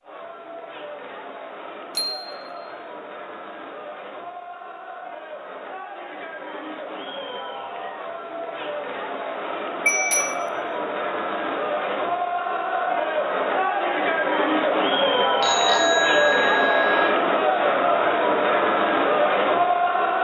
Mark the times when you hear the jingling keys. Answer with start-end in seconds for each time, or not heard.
not heard.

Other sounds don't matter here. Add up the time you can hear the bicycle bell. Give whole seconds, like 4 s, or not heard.
3 s.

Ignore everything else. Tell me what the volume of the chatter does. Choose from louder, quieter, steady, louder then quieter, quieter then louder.
louder.